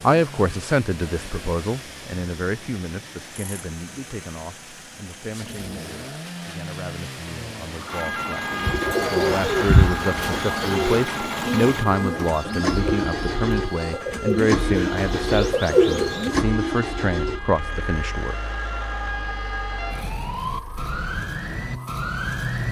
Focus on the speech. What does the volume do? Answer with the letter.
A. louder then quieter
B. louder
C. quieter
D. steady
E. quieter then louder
E.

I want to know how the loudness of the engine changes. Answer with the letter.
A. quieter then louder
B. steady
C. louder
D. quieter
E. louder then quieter
E.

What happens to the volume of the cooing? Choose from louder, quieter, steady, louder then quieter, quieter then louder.
quieter then louder.